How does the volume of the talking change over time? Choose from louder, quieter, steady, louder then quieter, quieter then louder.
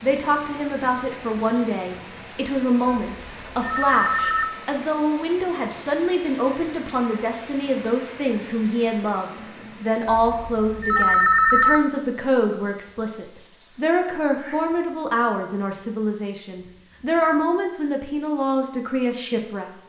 steady.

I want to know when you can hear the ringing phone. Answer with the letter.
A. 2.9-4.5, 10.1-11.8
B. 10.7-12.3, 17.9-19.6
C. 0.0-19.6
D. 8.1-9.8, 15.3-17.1
A.